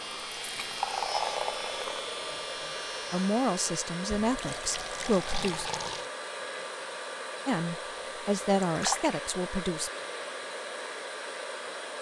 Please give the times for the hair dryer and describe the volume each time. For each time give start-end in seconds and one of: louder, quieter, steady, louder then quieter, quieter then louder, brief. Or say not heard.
0.0-11.9 steady.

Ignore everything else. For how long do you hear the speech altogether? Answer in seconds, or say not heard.
5 s.